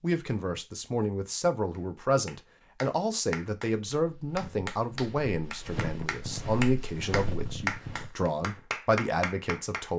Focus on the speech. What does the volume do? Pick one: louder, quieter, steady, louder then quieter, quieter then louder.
steady.